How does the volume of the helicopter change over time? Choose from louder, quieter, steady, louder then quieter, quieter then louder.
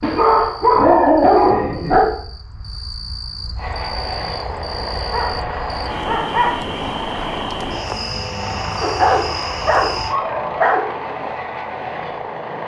steady.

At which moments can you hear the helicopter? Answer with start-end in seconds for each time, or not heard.
3.5-12.6.